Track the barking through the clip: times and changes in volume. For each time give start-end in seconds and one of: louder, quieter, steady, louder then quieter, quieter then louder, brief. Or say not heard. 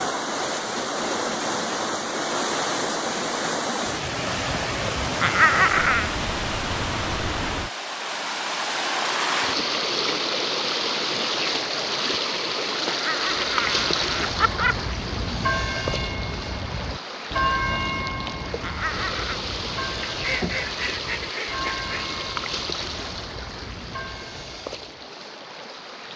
not heard.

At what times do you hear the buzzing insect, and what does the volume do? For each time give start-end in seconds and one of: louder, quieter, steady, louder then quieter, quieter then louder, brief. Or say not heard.
not heard.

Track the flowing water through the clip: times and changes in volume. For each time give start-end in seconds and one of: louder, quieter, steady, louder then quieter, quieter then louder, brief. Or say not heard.
0.0-26.1 quieter.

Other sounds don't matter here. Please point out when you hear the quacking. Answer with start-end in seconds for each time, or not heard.
20.1-22.1.